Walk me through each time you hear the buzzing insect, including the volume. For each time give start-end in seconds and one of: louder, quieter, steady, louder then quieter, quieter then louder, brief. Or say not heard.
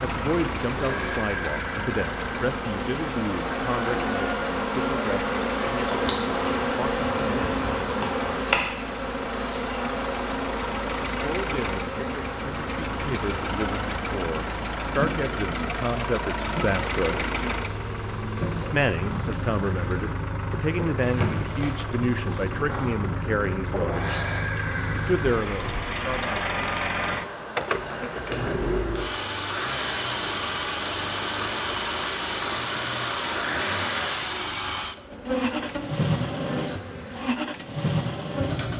0.0-38.7 quieter.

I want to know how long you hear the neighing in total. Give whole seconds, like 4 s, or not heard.
3 s.